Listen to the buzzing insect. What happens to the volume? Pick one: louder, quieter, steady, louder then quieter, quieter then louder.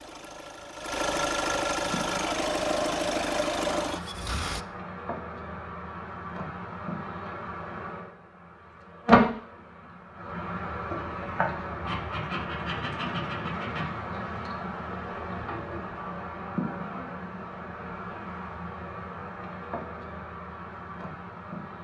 louder then quieter.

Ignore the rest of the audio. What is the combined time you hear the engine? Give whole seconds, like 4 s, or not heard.
5 s.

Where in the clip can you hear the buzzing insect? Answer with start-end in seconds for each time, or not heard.
1.8-21.7.